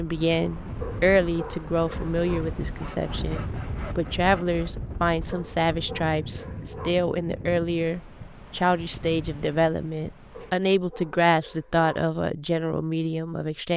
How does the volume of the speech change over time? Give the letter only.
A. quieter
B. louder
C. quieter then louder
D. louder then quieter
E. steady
E.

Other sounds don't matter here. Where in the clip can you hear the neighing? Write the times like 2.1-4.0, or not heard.
not heard.